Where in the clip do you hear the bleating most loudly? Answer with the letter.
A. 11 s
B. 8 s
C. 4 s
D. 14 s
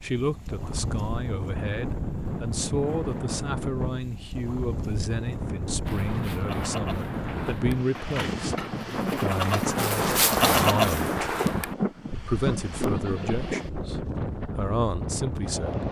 A.